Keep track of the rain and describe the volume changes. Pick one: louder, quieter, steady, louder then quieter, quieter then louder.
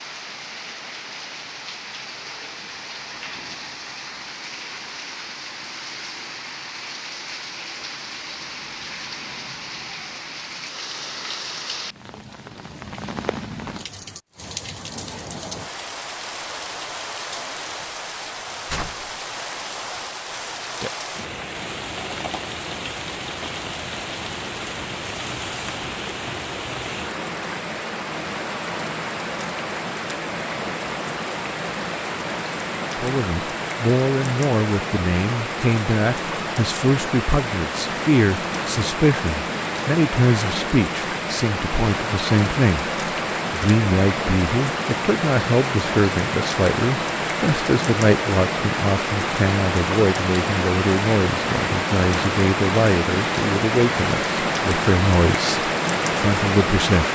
louder.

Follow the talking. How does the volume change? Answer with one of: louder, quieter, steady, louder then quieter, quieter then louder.
steady.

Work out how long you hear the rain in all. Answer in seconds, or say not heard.
57 s.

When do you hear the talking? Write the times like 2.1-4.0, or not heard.
33.0-42.9, 43.5-57.1.